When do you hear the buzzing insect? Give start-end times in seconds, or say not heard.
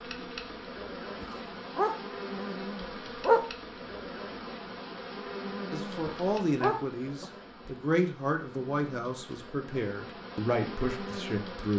0.0-11.7.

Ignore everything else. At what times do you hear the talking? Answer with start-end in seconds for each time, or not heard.
5.7-11.7.